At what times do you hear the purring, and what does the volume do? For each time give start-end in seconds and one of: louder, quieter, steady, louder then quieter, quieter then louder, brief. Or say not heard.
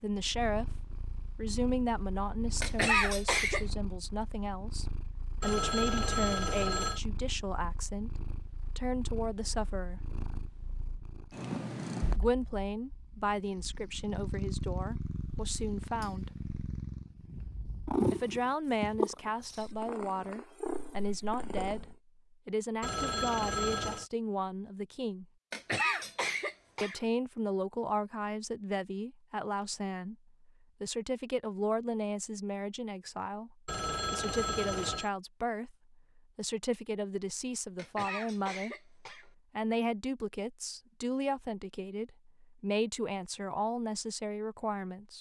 0.1-21.9 louder.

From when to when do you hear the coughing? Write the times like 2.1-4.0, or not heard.
2.6-3.6, 25.5-27.0, 37.8-39.2.